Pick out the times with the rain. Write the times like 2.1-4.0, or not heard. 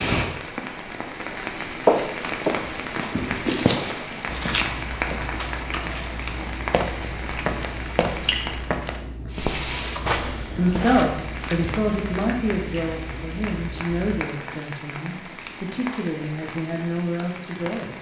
0.0-17.9.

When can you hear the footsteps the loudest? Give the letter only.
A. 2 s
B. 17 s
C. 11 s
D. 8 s
A.